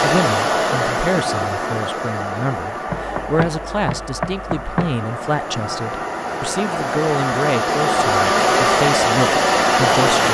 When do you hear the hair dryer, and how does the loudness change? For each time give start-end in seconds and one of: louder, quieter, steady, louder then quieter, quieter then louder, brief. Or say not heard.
0.0-10.2 quieter then louder.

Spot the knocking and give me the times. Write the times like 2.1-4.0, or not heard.
2.9-5.0.